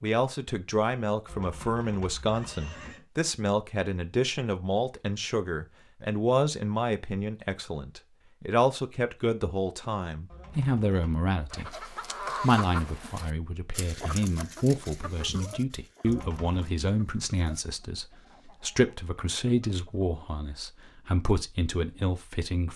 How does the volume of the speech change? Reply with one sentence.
The volume of the speech stays about the same.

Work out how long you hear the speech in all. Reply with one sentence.
The speech can be heard for 23 seconds in total.